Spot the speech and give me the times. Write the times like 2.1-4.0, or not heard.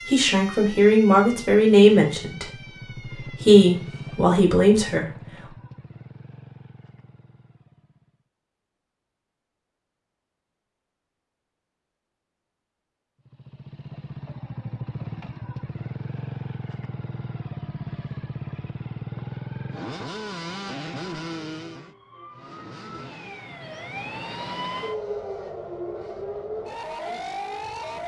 0.1-5.0.